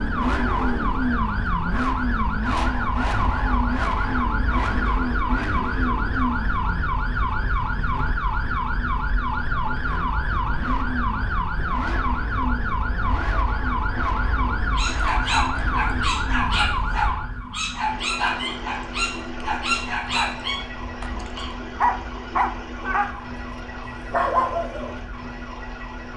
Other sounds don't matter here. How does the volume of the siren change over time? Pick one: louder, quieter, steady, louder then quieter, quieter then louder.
quieter.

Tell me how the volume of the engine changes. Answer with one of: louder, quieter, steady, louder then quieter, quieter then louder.
quieter.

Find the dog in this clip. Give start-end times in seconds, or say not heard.
14.8-24.9.